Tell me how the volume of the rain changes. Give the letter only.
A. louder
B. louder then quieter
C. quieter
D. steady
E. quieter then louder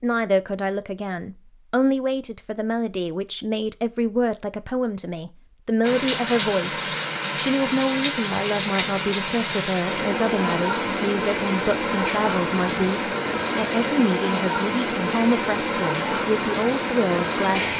D.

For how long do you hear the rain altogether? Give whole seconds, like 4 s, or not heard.
12 s.